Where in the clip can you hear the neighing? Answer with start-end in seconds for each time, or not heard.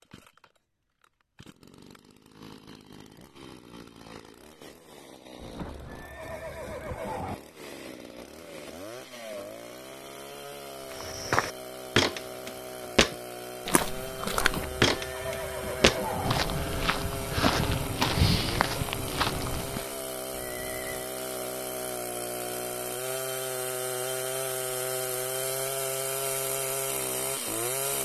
5.4-7.3, 14.3-16.4, 20.4-21.1.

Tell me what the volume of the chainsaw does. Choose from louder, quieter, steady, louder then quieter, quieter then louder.
louder.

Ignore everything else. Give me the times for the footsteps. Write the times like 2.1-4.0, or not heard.
10.9-19.9.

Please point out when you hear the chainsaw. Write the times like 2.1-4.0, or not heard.
0.0-28.0.